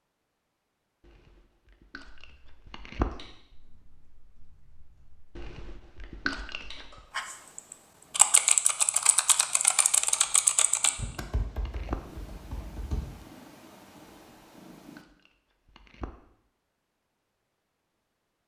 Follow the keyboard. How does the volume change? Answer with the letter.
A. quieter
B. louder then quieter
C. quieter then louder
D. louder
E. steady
B.